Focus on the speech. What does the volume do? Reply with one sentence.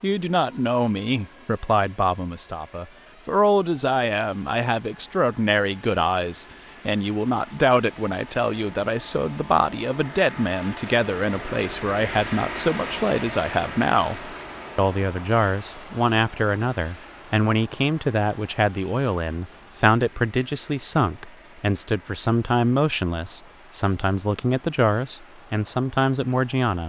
The volume of the speech stays about the same.